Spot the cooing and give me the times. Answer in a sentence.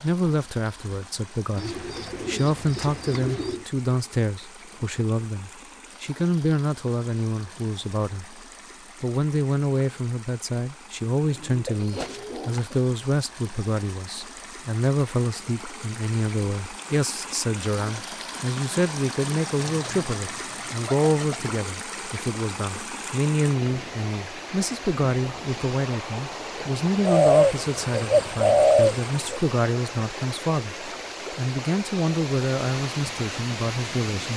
The cooing can be heard from 1.6 to 3.6 s, from 11.3 to 12.8 s, from 19.6 to 21.5 s and from 27.1 to 29.4 s.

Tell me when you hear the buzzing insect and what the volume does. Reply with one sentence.
You can't hear the buzzing insect here.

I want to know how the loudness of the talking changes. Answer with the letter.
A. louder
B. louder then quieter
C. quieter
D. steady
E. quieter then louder
D.